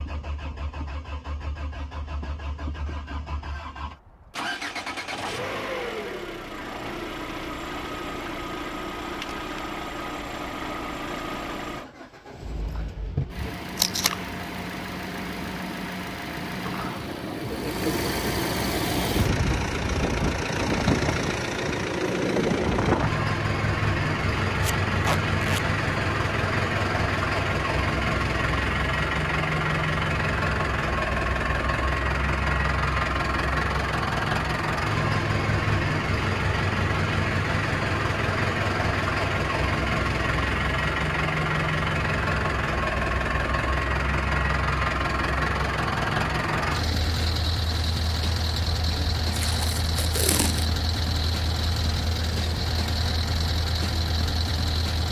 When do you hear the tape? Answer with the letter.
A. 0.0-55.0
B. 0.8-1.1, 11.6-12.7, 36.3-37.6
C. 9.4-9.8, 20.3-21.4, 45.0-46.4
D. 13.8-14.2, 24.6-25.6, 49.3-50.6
D.